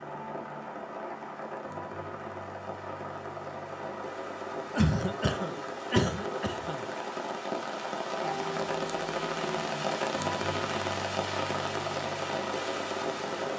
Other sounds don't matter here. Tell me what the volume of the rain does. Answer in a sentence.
The volume of the rain goes up.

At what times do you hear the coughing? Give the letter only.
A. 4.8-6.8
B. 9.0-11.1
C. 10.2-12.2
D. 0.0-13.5
A.